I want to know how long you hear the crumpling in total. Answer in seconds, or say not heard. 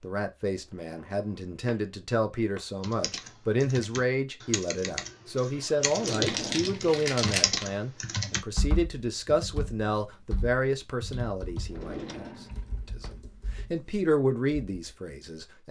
2 s.